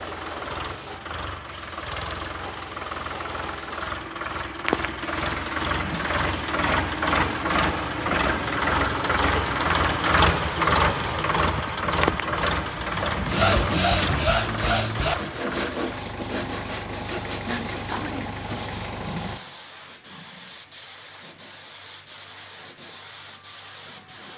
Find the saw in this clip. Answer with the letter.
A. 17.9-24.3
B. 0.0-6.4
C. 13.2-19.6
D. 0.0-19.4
C.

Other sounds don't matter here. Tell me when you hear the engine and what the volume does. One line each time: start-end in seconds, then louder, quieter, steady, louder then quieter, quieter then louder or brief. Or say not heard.
0.0-19.4 louder then quieter.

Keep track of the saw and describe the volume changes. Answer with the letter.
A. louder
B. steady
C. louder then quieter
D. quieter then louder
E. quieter
E.